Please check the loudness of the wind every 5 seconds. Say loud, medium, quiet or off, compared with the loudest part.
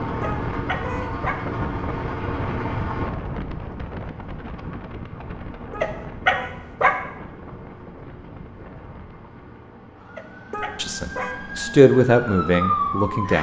loud, medium, off.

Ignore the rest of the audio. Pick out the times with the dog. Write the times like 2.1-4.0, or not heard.
0.2-1.4, 5.8-7.0, 10.2-11.3.